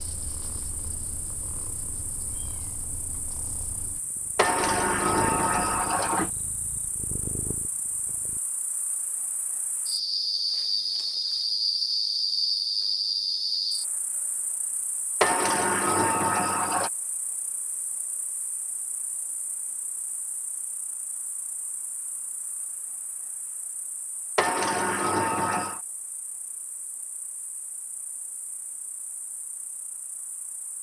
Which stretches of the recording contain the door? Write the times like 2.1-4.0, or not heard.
4.3-6.3, 15.2-16.9, 24.4-25.8.